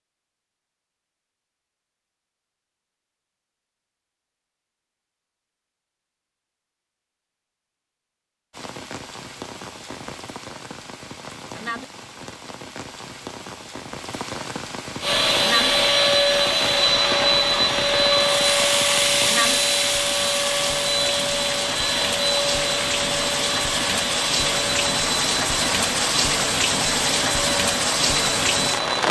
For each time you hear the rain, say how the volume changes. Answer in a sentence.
You can hear the rain from 8.5 to 29.0 s, getting louder.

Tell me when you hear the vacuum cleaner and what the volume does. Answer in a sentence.
The vacuum cleaner can be heard from 15.0 to 29.0 s, getting quieter.